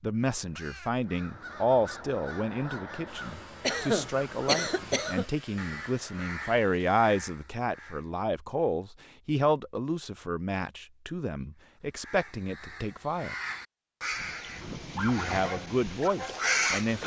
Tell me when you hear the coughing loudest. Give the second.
4 s.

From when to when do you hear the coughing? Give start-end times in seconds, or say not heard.
3.6-5.2.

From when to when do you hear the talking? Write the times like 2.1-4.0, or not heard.
0.0-13.3, 14.9-17.0.